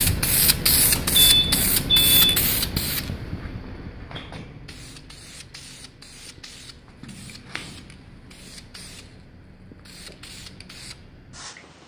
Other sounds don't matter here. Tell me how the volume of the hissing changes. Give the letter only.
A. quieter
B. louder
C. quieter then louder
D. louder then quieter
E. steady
A.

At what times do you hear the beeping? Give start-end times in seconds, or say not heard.
0.9-2.2.